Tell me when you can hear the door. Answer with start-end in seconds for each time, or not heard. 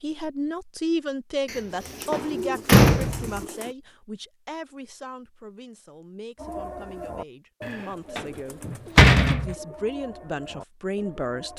1.5-3.4, 7.7-9.6.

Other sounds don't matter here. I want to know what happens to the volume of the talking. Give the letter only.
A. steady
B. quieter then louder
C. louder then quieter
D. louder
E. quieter
B.